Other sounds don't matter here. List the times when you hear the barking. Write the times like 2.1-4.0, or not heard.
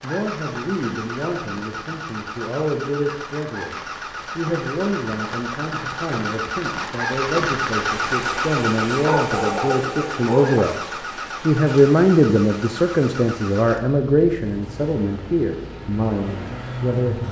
9.1-10.7.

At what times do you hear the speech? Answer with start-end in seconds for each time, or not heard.
0.0-17.2.